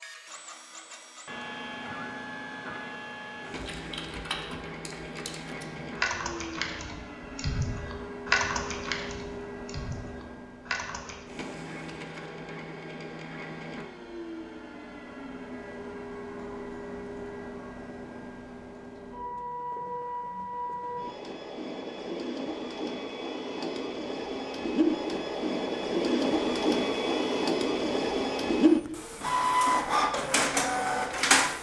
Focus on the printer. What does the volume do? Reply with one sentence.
The volume of the printer goes up.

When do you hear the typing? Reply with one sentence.
You can hear the typing from 3.5 to 11.2 s.